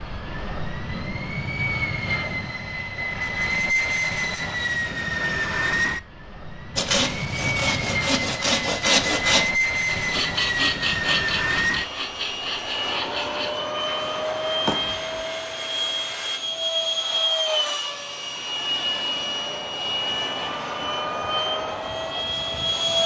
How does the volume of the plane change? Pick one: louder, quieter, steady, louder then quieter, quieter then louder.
steady.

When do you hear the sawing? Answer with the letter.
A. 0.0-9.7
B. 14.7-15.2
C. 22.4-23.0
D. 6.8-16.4
D.